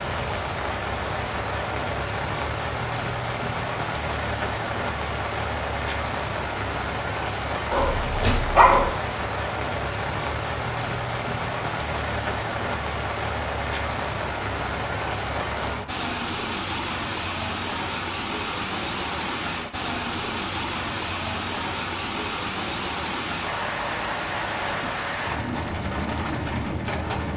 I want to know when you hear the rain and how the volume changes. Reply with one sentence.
You can hear the rain from 0.0 to 27.3 s, at a steady volume.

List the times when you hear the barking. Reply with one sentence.
The barking can be heard from 7.7 to 8.8 s.